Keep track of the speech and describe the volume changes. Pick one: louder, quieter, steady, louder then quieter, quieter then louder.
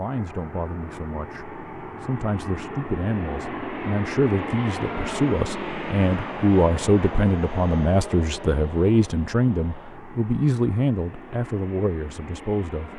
louder.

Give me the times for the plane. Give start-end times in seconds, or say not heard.
0.0-12.9.